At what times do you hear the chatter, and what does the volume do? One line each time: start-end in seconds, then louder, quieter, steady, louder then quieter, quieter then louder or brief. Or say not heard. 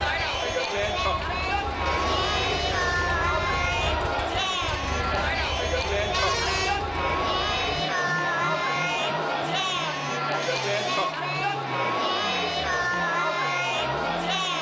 0.0-14.5 steady.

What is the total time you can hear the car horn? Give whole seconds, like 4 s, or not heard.
3 s.